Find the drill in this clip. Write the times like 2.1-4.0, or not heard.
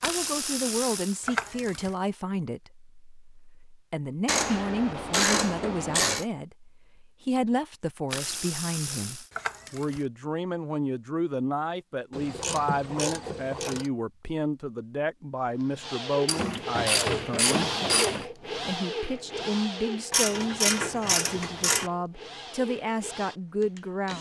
15.4-24.1.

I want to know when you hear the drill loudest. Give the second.
18 s.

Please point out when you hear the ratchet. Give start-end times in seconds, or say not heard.
0.0-1.9, 4.2-6.2, 8.1-10.0, 12.1-13.9, 16.2-18.2, 20.1-21.9.